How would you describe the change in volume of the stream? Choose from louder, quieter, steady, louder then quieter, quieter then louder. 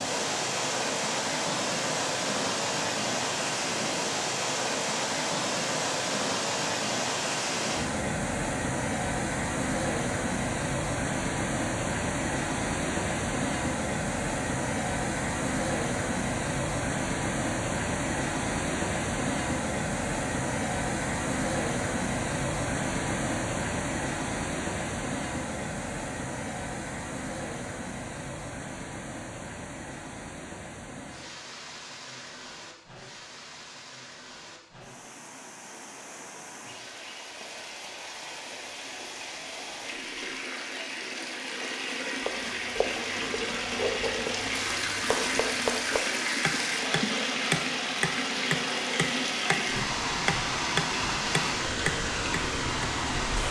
quieter then louder.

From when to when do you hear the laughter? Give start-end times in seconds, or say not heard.
not heard.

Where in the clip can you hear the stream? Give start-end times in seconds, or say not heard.
0.0-53.4.